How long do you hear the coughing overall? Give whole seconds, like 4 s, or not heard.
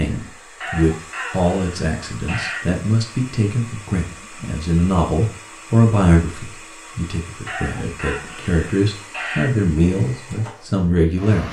4 s.